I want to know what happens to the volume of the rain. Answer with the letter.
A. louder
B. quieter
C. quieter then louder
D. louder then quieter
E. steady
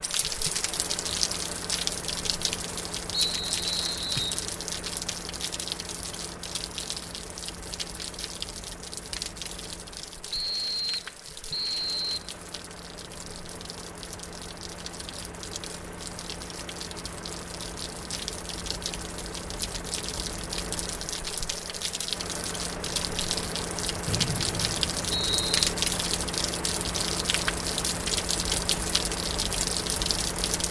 C.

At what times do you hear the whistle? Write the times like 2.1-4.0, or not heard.
3.1-4.4, 10.3-12.3, 24.1-25.6.